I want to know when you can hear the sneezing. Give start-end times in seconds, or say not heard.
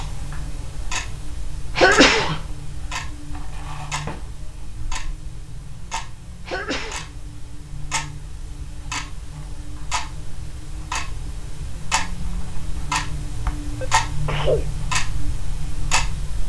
1.8-2.4, 6.5-7.1, 13.5-14.8.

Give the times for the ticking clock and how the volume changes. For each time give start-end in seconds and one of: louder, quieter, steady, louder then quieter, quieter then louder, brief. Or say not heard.
0.0-16.4 louder.